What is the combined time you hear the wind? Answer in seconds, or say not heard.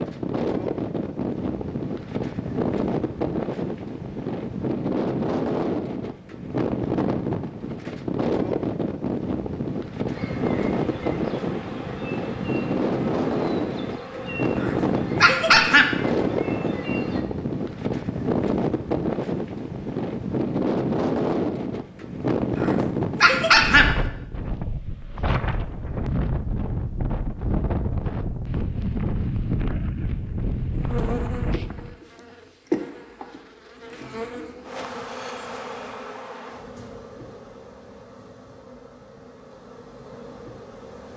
32 s.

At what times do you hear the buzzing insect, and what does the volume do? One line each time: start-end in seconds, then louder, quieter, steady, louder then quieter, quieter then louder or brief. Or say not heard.
10.1-17.2 steady
30.7-41.1 quieter.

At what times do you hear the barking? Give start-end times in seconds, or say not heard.
14.6-16.0, 22.6-24.0.